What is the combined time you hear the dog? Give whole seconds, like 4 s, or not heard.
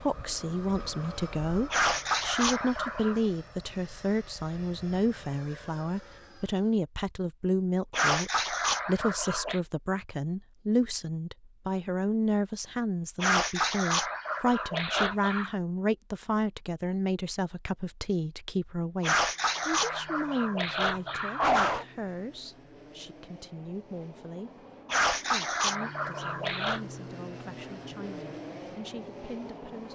10 s.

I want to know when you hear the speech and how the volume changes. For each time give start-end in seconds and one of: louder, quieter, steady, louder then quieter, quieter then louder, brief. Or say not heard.
0.0-29.9 quieter.